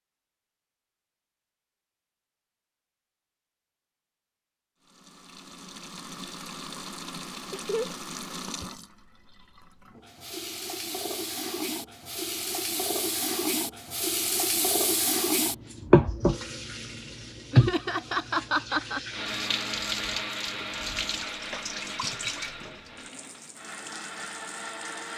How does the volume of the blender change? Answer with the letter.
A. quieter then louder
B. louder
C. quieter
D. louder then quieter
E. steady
A.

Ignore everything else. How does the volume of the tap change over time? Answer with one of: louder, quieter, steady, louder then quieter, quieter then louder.
louder then quieter.